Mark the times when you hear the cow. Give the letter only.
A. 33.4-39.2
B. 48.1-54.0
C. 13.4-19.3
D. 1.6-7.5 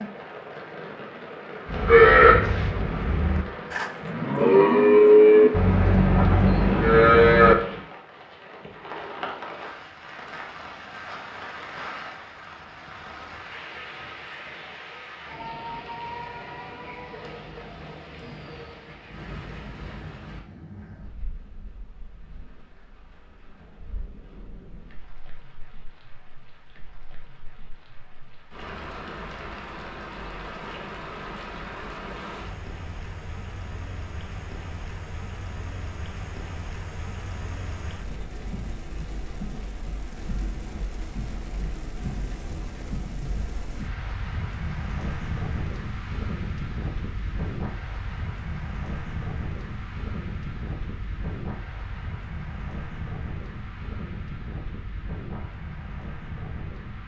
D.